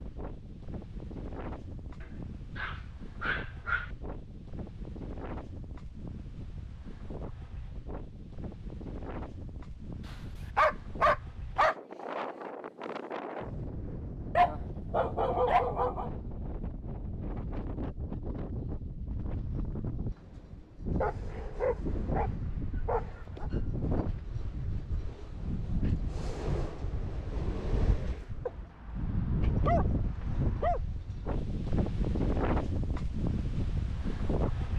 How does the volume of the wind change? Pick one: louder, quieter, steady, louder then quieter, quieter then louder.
louder.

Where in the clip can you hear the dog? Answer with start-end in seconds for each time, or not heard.
2.0-3.9, 10.1-11.8, 14.3-16.1, 21.0-23.4, 28.4-30.8.